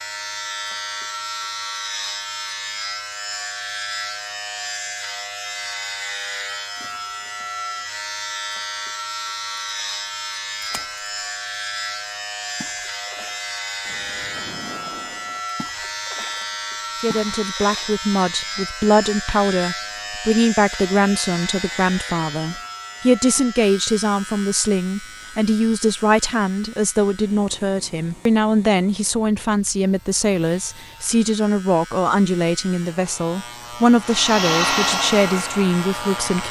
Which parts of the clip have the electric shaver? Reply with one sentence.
You can hear the electric shaver from 0.0 to 36.4 s.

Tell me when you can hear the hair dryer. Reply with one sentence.
You can hear the hair dryer from 34.0 to 36.4 s.